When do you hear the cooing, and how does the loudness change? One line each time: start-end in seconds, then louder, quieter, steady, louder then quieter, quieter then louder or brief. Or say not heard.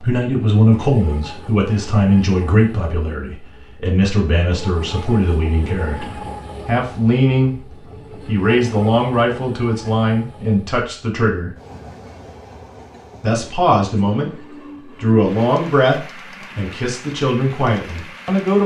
not heard.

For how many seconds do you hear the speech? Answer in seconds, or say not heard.
17 s.